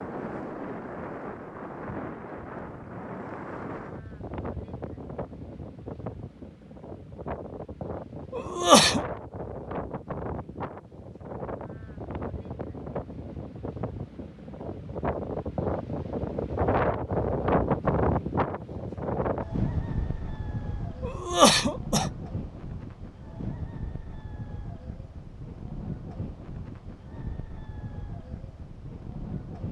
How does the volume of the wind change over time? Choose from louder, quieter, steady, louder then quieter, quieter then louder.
louder then quieter.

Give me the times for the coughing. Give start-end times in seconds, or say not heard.
8.3-9.1, 21.0-22.1.